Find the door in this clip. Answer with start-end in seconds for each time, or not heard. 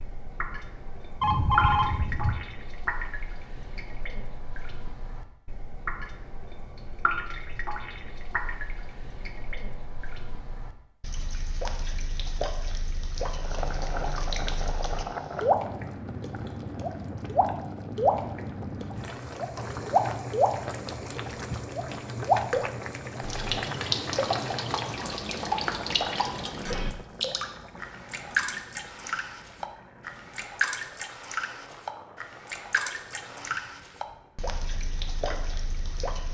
not heard.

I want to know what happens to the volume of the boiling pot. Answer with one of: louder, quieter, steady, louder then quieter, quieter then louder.
quieter.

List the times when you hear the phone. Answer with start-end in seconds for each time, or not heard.
1.2-2.5.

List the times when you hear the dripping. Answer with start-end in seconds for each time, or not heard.
0.0-36.2.